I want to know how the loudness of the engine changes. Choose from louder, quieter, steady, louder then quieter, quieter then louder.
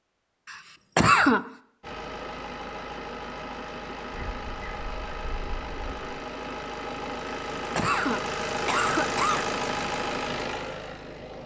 louder.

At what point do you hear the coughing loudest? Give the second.
1 s.